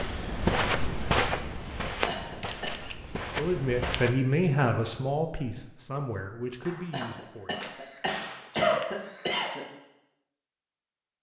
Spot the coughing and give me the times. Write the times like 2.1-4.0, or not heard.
2.0-2.7, 6.9-9.7.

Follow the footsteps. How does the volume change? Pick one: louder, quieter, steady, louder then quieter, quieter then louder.
quieter then louder.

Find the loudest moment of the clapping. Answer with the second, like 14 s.
8 s.